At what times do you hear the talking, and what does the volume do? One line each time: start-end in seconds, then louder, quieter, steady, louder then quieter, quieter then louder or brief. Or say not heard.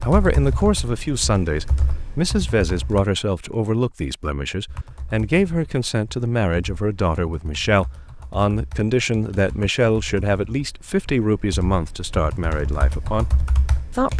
0.0-14.1 steady.